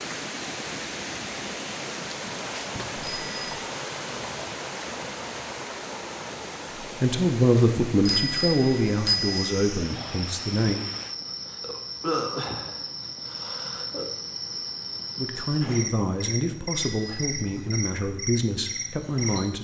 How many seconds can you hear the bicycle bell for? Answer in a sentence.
The bicycle bell can be heard for 4 seconds in total.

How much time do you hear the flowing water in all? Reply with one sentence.
You can hear the flowing water for 11 seconds altogether.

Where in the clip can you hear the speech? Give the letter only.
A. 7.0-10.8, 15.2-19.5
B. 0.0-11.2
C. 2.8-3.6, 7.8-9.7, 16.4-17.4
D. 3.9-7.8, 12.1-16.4
A.